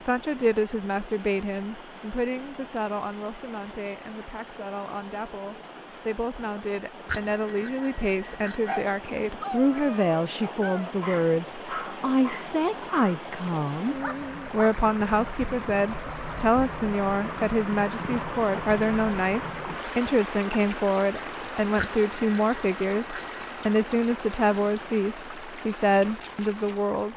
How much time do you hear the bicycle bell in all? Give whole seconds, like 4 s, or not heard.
4 s.